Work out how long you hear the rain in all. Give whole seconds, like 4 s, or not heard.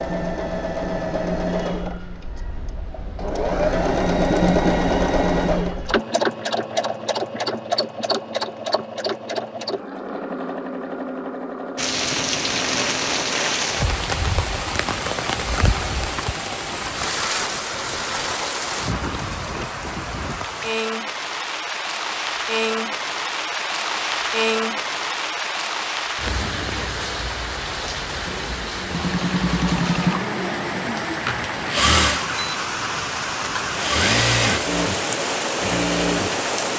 25 s.